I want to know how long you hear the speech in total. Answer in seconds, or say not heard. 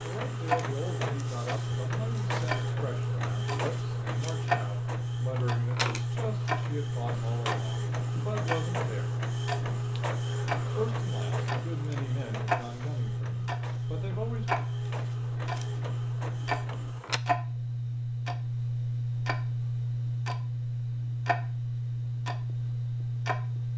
13 s.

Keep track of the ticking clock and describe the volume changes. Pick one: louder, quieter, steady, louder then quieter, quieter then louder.
steady.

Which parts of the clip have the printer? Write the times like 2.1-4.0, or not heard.
0.0-17.2.